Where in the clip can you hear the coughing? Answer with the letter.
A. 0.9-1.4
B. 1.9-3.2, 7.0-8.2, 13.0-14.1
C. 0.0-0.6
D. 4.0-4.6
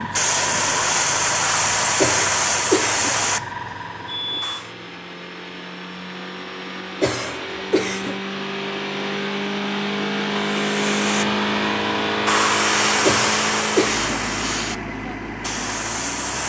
B.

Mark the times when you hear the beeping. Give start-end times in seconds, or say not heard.
4.0-4.6.